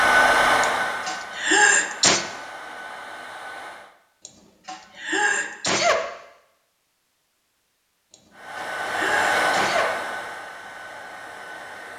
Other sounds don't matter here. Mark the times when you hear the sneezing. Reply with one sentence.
You can hear the sneezing from 0.6 to 2.2 s, from 4.2 to 6.1 s and from 8.1 to 9.9 s.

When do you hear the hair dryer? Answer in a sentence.
The hair dryer can be heard from 0.0 to 4.0 s and from 8.3 to 11.9 s.